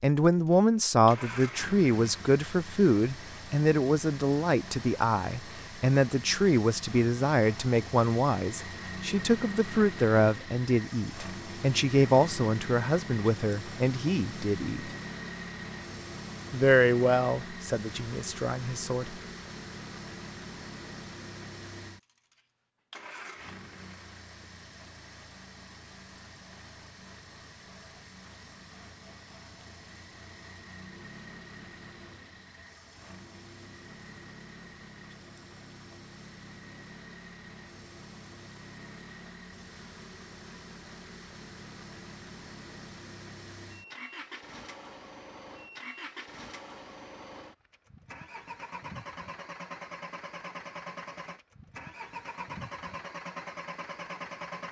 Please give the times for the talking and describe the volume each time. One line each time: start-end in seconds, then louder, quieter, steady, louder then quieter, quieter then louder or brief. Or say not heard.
0.0-14.9 steady
16.5-19.1 brief.